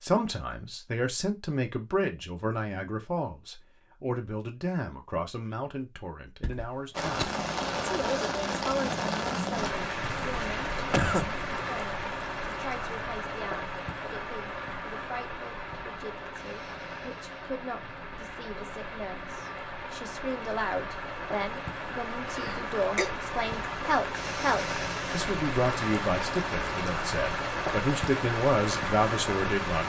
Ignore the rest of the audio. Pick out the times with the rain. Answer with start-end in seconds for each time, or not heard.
6.9-29.8.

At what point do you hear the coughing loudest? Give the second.
11 s.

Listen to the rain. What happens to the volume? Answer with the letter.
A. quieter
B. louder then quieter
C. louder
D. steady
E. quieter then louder
E.